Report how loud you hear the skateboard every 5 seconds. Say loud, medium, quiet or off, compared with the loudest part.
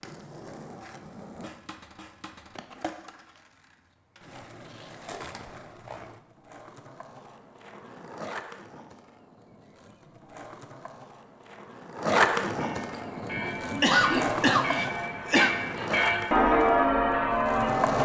quiet, quiet, loud, loud.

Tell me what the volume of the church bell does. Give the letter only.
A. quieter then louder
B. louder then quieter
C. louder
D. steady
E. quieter
C.